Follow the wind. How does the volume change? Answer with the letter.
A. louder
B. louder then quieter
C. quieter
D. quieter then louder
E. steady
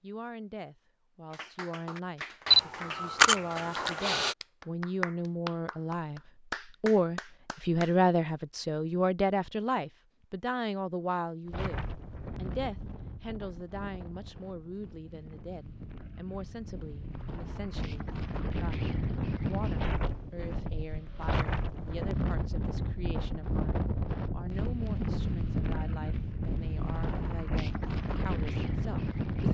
A.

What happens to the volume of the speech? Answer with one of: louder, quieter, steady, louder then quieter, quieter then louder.
louder then quieter.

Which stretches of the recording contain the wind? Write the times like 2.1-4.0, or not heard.
11.4-29.4.